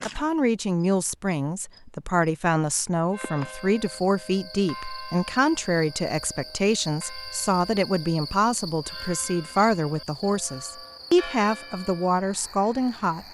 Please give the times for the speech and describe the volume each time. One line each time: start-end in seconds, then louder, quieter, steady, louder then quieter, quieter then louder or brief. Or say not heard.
0.1-13.2 steady.